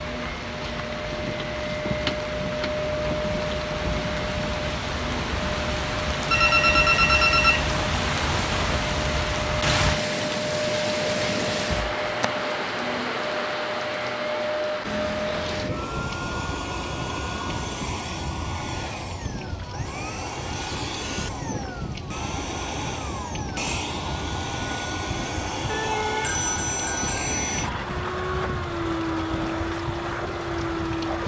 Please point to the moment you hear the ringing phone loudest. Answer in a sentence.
The volume of the ringing phone peaks at 7 seconds.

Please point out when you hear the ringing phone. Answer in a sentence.
You can hear the ringing phone from 6.3 to 7.8 s and from 25.6 to 27.7 s.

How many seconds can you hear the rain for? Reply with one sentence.
You can hear the rain for 31 seconds altogether.